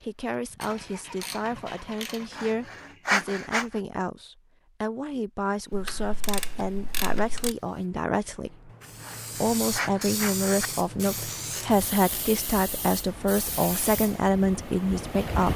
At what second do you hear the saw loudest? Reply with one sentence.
The volume of the saw peaks at 3 seconds.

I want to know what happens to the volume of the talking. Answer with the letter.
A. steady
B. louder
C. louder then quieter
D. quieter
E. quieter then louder
B.